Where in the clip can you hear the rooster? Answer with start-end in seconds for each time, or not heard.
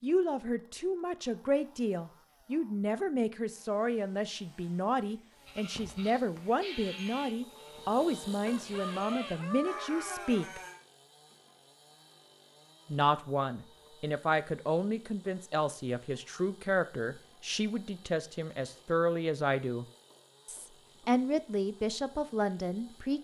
8.4-10.4.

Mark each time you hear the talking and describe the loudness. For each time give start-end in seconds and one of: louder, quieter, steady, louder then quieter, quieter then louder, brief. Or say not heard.
0.0-10.6 steady
12.9-19.9 steady
20.4-23.2 brief.